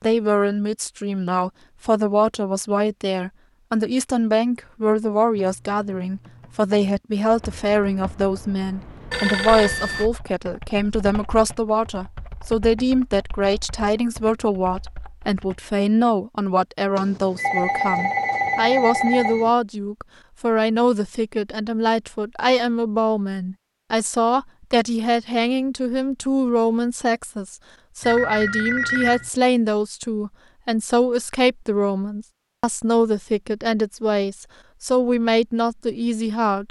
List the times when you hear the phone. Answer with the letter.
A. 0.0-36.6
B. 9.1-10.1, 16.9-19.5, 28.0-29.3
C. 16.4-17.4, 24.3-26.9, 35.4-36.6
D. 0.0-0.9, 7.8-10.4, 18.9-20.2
B.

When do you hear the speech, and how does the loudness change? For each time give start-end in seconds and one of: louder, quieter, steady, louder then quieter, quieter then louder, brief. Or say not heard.
0.0-36.6 steady.